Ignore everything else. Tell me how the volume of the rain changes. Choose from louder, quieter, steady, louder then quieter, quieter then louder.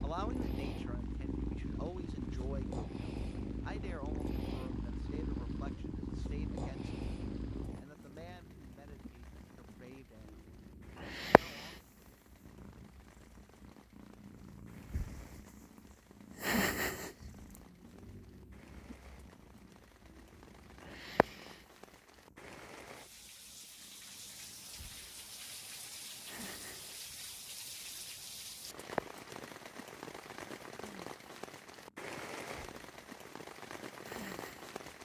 louder.